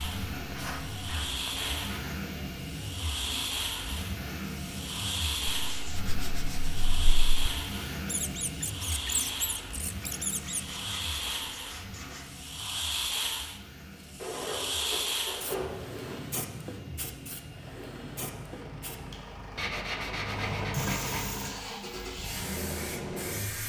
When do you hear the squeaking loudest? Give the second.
9 s.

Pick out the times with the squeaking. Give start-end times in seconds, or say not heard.
8.1-10.7.